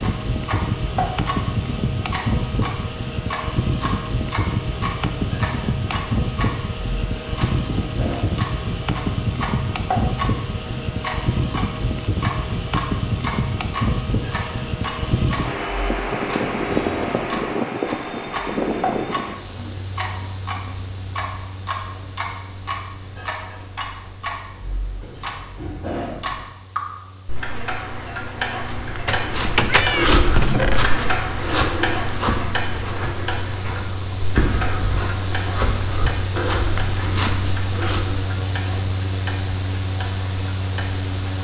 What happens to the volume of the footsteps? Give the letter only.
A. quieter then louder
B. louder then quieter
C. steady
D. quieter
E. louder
A.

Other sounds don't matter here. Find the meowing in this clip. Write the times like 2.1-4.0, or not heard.
29.1-30.9.